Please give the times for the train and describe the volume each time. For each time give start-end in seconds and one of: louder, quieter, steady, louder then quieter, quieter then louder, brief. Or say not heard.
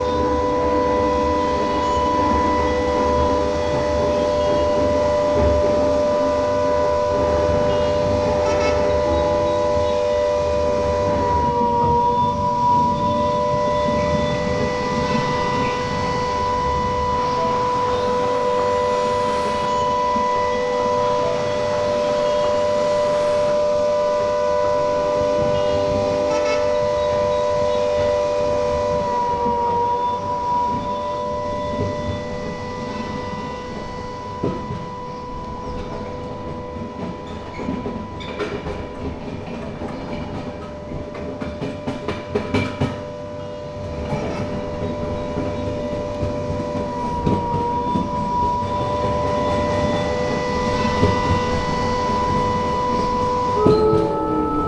0.0-54.6 quieter then louder.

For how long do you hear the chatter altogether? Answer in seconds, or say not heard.
not heard.